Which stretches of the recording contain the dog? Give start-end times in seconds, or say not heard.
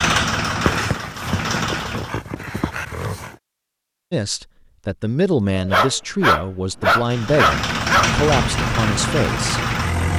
0.6-3.3, 5.5-8.1.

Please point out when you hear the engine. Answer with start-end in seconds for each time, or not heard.
0.0-2.2, 7.0-10.1.